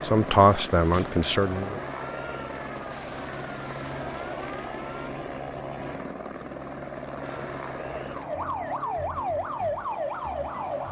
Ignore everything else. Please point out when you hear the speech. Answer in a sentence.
The speech can be heard from 0.0 to 1.8 s.